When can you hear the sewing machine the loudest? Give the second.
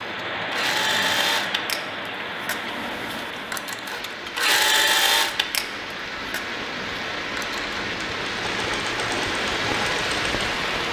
5 s.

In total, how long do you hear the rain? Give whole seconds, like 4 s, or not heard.
11 s.